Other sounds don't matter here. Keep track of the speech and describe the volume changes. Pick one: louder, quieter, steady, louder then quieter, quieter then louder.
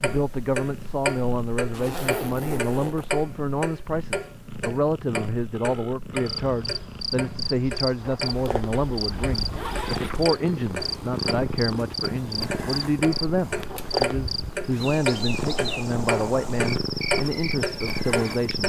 steady.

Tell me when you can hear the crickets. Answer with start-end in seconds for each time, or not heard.
6.2-18.6.